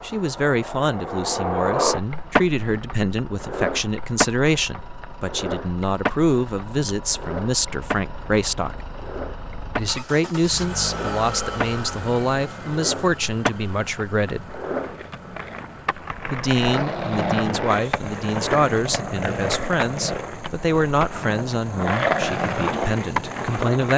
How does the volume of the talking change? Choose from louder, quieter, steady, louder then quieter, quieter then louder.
steady.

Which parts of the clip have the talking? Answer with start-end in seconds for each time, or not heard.
0.0-8.8, 9.8-14.6, 16.3-23.9.